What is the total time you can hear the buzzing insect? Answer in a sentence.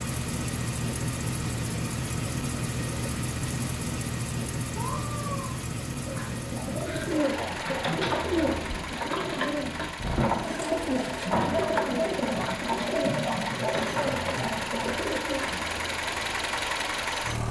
The buzzing insect can't be heard in this clip.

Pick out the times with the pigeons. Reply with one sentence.
The pigeons can be heard from 6.0 to 15.9 s.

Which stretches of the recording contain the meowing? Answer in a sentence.
The meowing can be heard from 4.7 to 5.5 s.